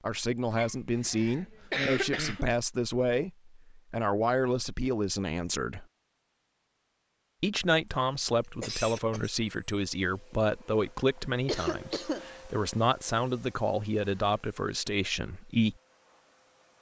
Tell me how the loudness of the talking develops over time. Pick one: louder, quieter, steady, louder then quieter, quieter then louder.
steady.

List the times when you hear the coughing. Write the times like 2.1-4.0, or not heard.
0.6-2.5, 8.6-9.3, 11.4-12.3.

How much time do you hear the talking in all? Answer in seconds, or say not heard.
14 s.